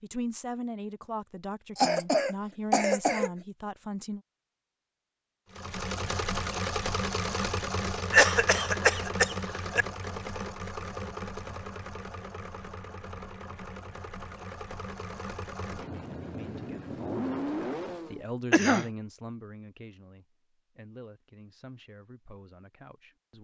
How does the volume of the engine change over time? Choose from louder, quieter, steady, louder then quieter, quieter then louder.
quieter then louder.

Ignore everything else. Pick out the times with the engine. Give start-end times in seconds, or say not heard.
5.5-18.2.